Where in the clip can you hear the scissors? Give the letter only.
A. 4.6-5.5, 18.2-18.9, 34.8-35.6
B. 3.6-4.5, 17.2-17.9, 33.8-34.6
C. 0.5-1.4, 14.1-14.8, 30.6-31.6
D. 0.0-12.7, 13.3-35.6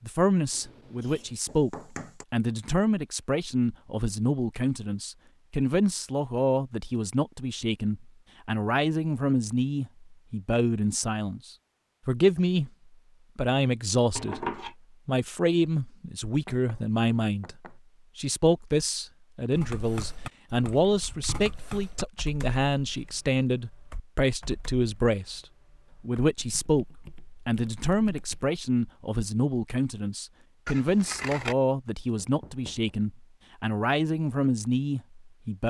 C.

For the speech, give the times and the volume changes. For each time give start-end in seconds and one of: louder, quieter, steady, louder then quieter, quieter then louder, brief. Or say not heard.
0.0-12.7 steady
13.3-35.6 steady.